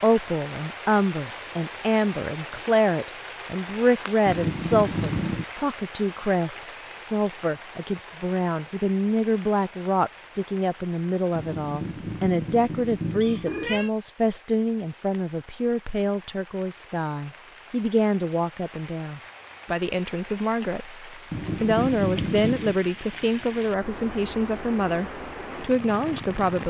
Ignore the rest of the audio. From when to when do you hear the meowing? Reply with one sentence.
You can hear the meowing from 4.2 to 5.5 s, from 11.3 to 13.9 s and from 21.3 to 22.8 s.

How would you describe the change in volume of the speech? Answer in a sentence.
The loudness of the speech stays about the same.